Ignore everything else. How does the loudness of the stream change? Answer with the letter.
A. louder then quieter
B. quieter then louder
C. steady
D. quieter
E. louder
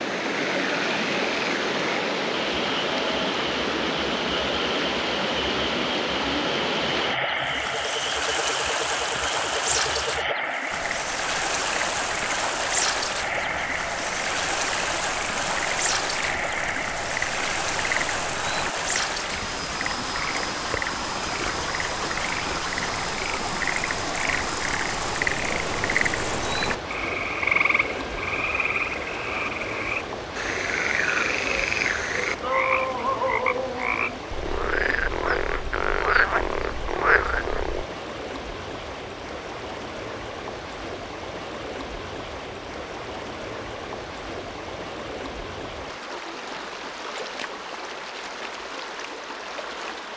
D.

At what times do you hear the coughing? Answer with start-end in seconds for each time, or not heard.
not heard.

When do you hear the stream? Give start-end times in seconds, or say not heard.
0.0-50.1.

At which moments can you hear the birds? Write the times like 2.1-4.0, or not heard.
not heard.